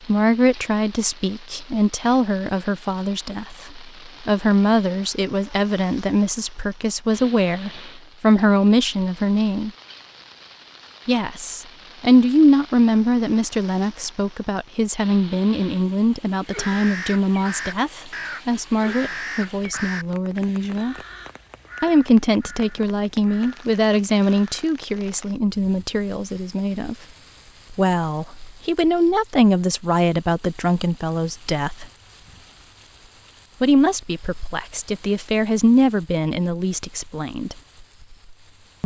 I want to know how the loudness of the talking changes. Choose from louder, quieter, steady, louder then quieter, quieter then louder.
steady.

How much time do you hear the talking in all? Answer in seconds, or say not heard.
33 s.